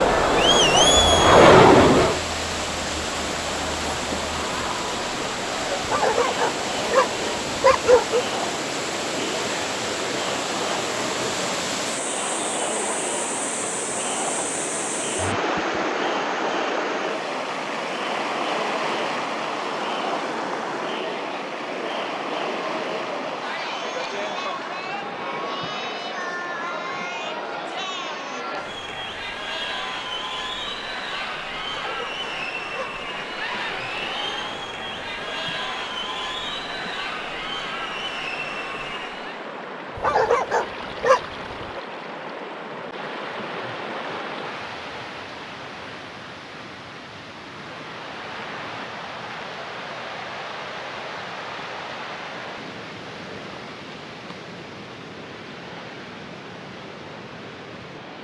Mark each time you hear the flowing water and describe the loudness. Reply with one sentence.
You can hear the flowing water from 0.0 to 58.1 s, getting quieter.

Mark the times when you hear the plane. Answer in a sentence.
You can hear the plane from 0.0 to 2.2 s.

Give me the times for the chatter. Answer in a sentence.
The chatter can be heard from 0.0 to 39.5 s.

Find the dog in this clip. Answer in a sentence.
The dog can be heard from 5.8 to 8.2 s, from 31.6 to 32.9 s and from 40.0 to 41.8 s.